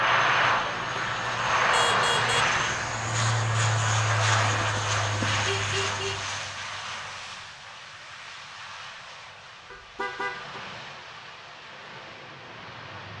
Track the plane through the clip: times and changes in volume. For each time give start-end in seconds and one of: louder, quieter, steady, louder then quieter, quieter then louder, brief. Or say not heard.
0.0-13.1 quieter.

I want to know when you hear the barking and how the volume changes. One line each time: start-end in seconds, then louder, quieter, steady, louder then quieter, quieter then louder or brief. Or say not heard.
not heard.